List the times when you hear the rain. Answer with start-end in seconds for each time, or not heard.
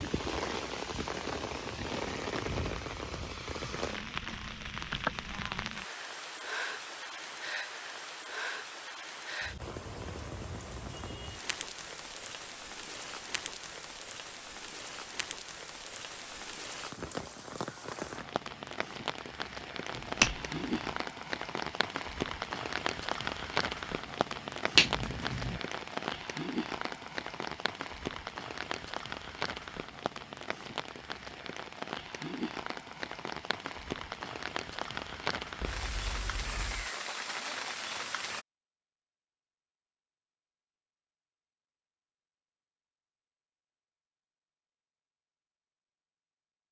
0.0-38.5.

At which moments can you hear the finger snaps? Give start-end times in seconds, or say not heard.
19.9-21.0, 24.8-25.6.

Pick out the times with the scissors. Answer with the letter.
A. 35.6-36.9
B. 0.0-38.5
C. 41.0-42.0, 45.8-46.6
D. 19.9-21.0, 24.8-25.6
A.